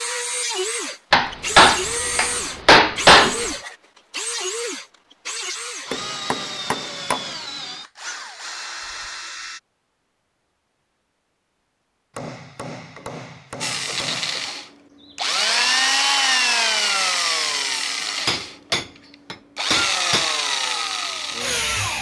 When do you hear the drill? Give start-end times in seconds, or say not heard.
0.0-9.6, 13.6-21.9.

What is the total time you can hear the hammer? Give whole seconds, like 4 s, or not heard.
8 s.